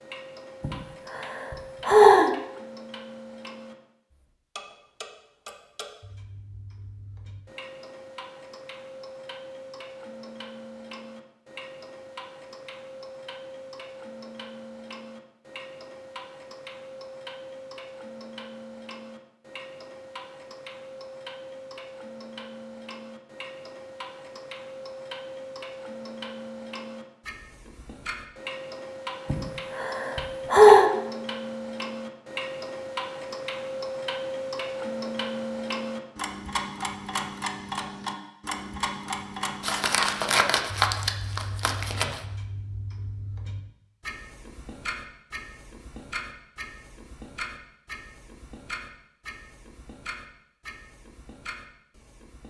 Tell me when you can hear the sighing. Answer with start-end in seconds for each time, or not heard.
0.6-2.3, 29.2-30.9.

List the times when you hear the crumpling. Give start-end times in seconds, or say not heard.
39.6-42.2.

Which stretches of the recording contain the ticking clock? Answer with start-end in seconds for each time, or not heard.
0.0-52.4.